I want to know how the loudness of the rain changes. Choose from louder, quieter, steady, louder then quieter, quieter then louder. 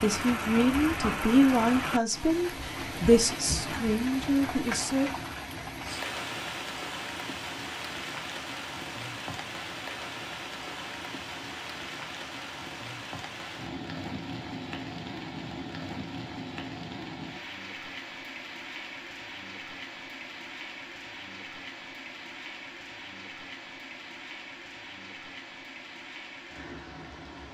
quieter.